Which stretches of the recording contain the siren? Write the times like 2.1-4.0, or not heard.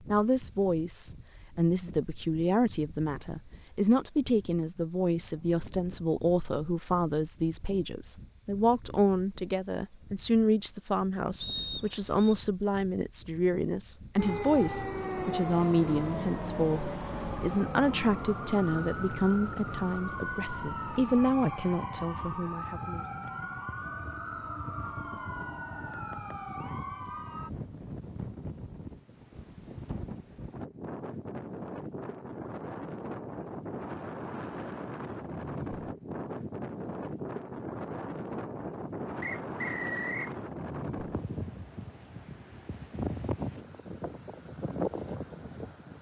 14.2-27.5.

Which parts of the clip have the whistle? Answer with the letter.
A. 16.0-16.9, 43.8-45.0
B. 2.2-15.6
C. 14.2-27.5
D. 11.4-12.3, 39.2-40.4
D.